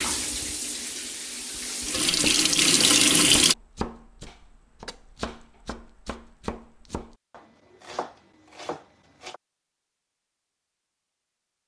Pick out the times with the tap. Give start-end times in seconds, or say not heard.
0.0-3.5.